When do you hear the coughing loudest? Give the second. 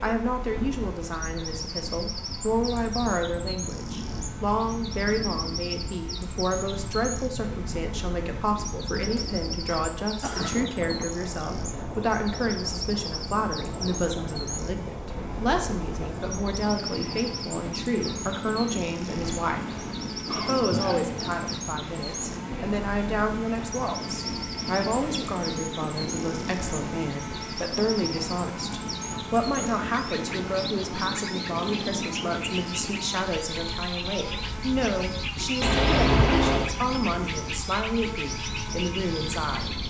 36 s.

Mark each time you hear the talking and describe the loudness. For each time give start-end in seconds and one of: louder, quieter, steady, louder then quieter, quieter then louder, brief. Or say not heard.
0.0-39.7 steady.